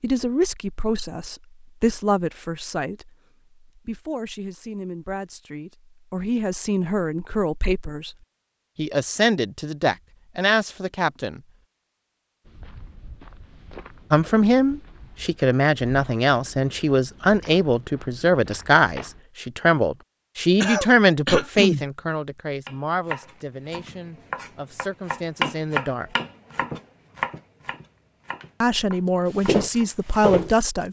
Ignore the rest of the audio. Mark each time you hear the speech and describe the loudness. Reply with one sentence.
The speech can be heard from 0.0 to 8.2 s, getting quieter then louder; briefly from 8.8 to 11.4 s; from 14.1 to 26.1 s, getting quieter; and briefly from 28.6 to 30.8 s.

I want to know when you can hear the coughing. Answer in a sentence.
You can hear the coughing from 20.6 to 21.9 s.